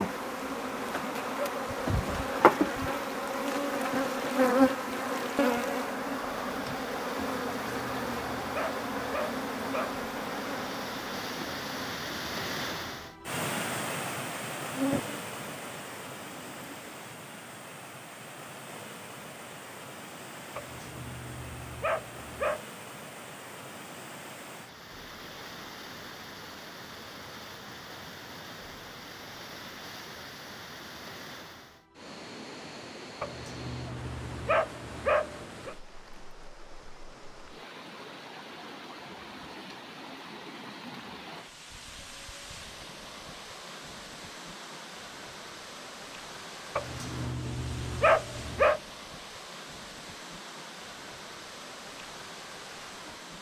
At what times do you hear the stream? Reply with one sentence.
The stream can be heard from 0.0 to 53.3 s.